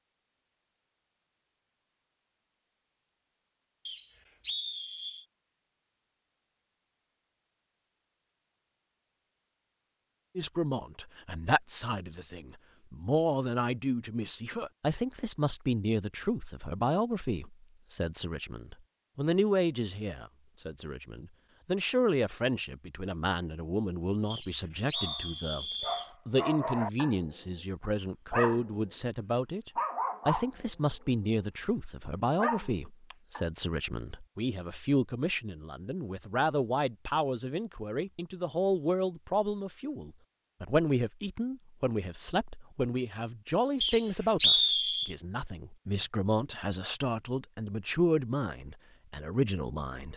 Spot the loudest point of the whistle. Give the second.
45 s.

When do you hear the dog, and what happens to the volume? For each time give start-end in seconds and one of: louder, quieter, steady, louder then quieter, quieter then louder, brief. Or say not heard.
24.9-28.9 quieter then louder
29.8-30.5 brief
31.1-33.5 brief.